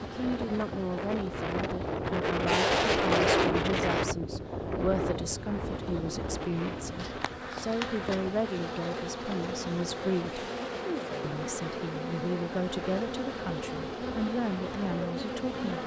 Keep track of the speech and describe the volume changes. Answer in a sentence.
The loudness of the speech stays about the same.